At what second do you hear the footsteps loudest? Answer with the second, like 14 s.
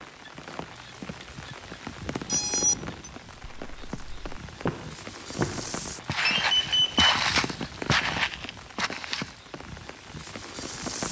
7 s.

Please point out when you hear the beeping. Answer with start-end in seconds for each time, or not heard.
2.2-3.1, 6.2-7.2.